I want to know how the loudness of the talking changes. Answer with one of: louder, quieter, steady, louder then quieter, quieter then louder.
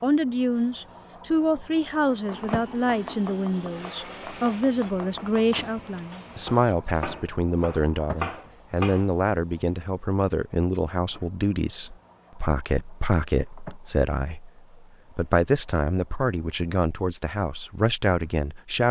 steady.